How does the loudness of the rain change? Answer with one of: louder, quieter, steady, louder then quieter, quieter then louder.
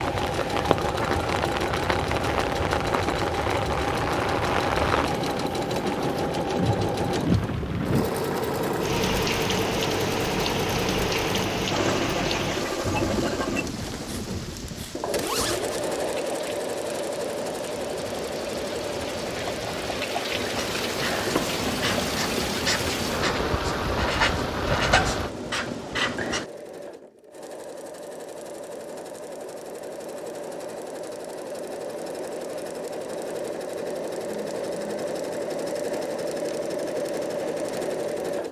quieter then louder.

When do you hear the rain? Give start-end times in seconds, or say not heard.
0.0-25.4.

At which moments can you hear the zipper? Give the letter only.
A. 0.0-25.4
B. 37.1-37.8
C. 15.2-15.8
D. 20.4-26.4
C.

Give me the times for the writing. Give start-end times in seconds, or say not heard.
20.4-26.4.